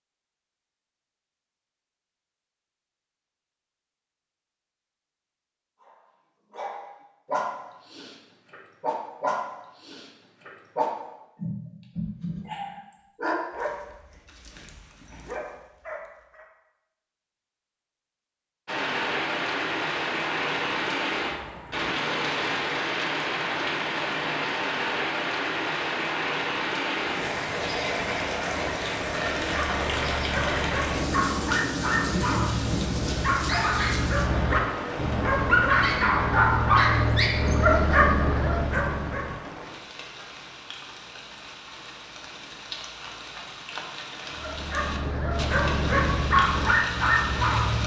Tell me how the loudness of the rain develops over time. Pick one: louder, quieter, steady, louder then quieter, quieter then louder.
quieter.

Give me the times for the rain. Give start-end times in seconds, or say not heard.
18.6-47.8.